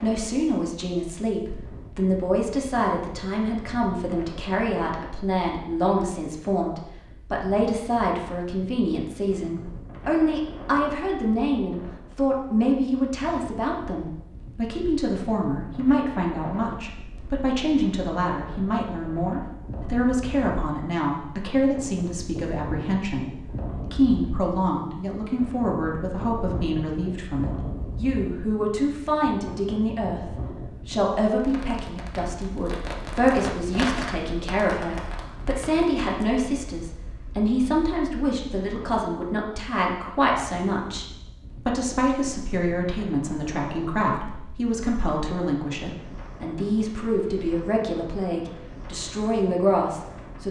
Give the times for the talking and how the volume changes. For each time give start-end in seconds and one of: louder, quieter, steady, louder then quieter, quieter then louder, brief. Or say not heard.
0.0-50.4 steady.